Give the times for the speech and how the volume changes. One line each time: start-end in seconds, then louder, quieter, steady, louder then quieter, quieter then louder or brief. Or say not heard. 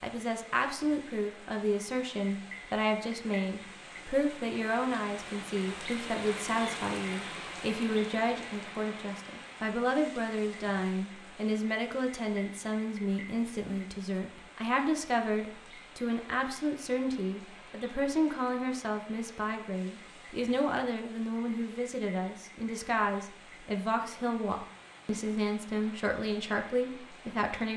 0.0-27.7 steady.